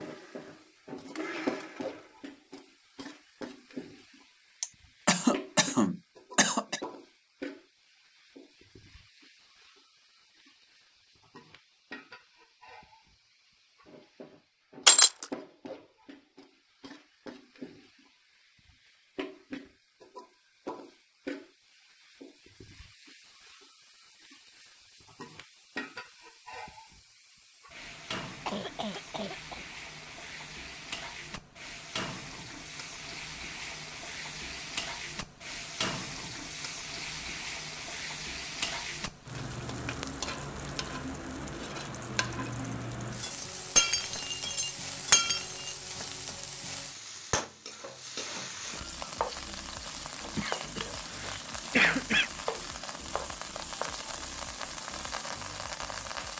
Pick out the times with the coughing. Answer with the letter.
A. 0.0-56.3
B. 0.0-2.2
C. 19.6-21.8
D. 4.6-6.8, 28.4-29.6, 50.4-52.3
D.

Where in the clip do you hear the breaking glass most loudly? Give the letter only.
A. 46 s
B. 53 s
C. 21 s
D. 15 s
D.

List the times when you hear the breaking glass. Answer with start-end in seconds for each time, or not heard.
14.8-15.3, 43.8-45.8.